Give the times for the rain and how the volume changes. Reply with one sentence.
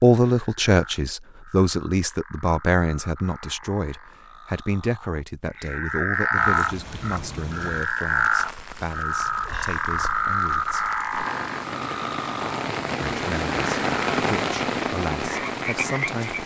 You can hear the rain from 6.3 to 16.4 s, getting louder.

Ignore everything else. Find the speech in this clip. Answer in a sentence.
The speech can be heard from 0.0 to 10.9 s and from 13.0 to 16.4 s.